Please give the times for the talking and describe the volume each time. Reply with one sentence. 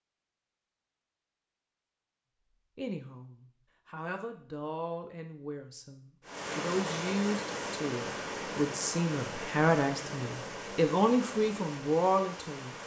The talking can be heard from 2.8 to 12.8 s, getting louder.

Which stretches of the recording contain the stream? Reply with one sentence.
You can hear the stream from 6.2 to 12.8 s.